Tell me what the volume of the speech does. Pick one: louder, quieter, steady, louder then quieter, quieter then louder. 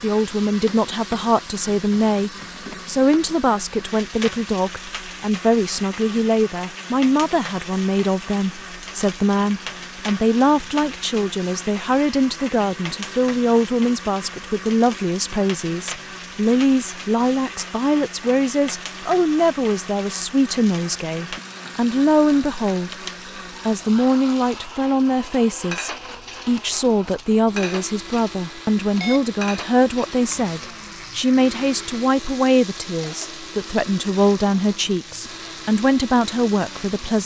steady.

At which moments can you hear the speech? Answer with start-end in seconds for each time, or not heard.
0.0-22.9, 23.6-37.2.